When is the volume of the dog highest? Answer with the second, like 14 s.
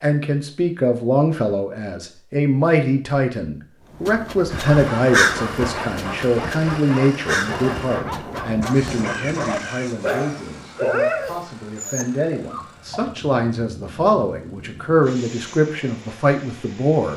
11 s.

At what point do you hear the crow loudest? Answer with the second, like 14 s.
5 s.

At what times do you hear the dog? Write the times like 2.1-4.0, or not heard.
4.6-13.1.